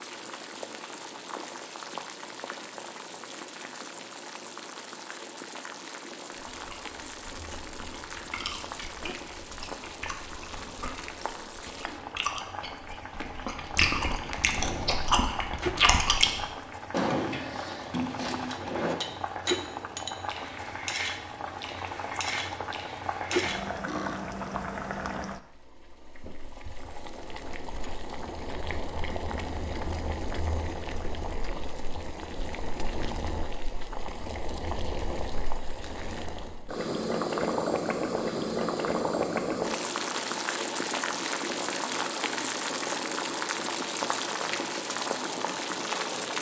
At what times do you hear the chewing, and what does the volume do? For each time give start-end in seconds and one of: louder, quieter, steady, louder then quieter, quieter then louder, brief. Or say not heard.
6.5-16.5 louder.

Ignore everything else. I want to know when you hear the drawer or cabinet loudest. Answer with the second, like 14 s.
17 s.